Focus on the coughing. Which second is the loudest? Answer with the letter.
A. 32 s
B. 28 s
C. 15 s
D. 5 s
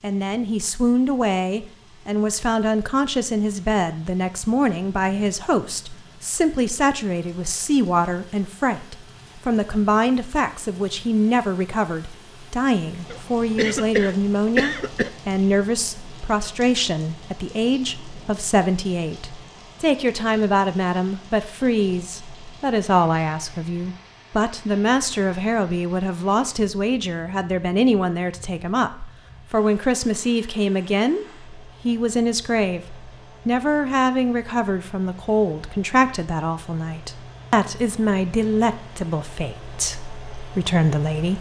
C.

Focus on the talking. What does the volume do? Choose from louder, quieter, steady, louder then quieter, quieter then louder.
steady.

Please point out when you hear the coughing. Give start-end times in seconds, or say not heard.
13.1-15.1.